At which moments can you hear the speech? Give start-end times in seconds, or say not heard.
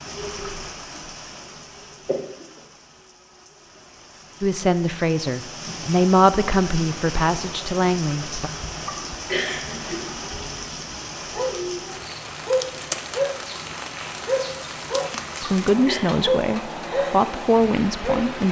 4.4-8.5, 15.4-18.4.